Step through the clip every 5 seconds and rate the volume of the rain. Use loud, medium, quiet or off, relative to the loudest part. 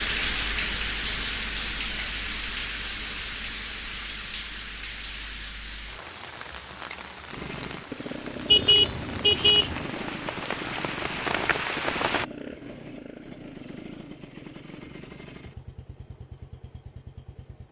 loud, medium, loud, off.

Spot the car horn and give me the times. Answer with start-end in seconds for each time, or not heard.
8.4-9.8.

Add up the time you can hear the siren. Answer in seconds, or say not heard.
not heard.